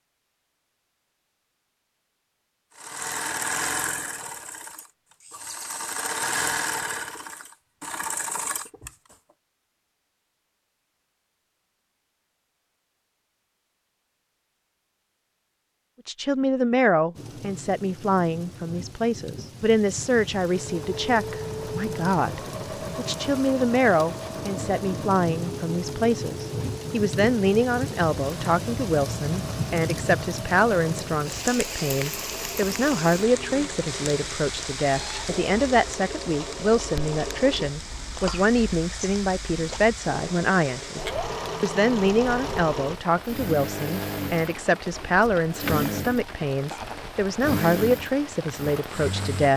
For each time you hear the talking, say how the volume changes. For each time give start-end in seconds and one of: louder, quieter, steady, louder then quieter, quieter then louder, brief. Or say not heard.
16.1-49.5 steady.